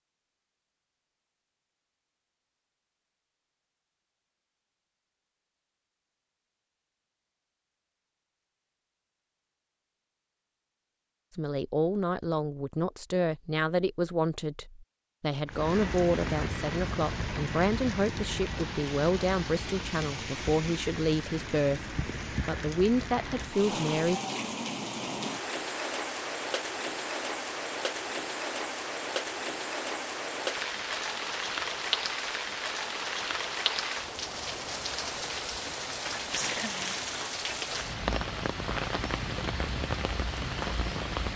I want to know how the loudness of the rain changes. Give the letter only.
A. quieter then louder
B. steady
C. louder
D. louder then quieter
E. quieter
B.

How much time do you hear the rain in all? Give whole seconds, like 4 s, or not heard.
26 s.